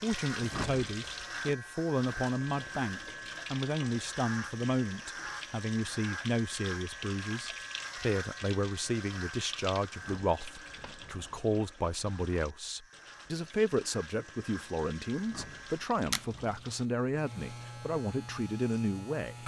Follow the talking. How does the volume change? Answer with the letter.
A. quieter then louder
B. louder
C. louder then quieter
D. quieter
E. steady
E.